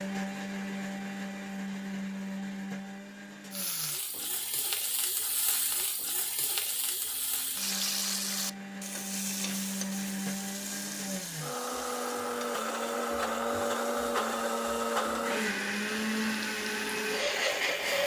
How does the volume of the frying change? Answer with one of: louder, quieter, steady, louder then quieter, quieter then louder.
quieter.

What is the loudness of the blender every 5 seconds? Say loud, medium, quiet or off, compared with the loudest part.
medium, medium, loud, loud.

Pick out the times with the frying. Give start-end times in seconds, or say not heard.
3.5-18.0.